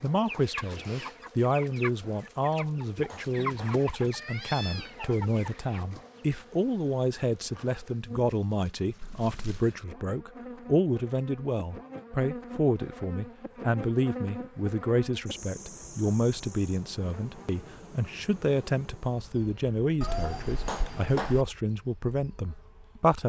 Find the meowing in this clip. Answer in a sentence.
You can hear the meowing from 4.1 to 5.0 s, from 9.0 to 9.6 s and from 20.0 to 21.4 s.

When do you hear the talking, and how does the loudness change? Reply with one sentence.
The talking can be heard from 0.0 to 23.2 s, at a steady volume.